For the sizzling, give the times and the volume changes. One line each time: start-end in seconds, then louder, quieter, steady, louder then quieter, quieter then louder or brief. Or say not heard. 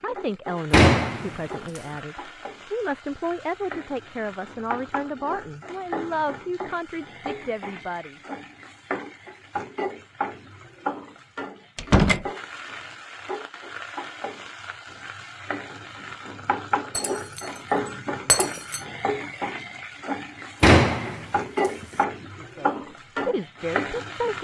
0.0-24.4 louder.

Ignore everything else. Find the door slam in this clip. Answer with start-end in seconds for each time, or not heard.
0.7-1.4, 11.8-12.2, 20.6-21.9.